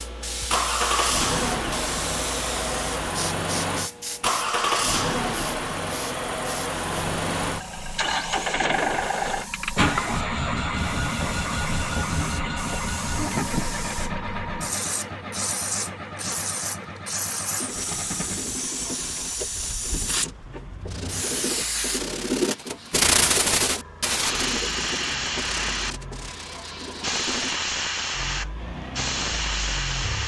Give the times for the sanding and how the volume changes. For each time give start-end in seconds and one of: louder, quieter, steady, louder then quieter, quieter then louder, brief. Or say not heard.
17.6-27.6 louder then quieter.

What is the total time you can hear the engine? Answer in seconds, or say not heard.
30 s.